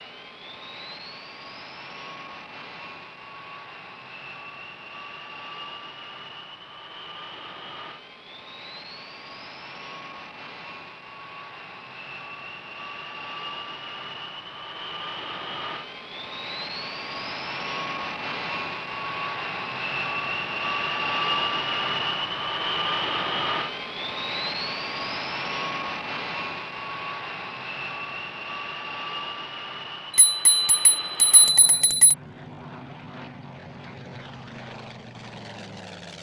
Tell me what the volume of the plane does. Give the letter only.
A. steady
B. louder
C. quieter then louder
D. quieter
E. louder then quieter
E.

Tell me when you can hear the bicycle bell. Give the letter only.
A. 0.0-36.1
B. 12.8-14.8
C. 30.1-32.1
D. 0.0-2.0
C.